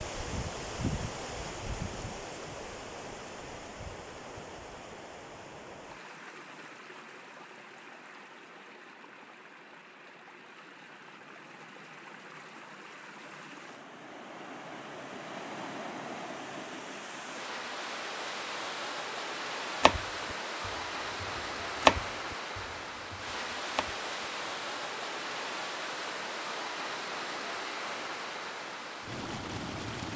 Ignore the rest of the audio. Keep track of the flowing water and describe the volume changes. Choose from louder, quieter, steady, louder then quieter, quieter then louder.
quieter then louder.